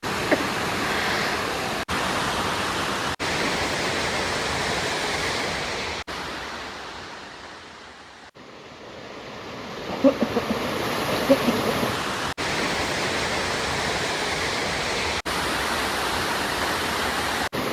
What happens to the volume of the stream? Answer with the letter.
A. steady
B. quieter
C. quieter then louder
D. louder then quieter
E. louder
C.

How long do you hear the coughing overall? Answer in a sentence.
The coughing can be heard for 3 seconds in total.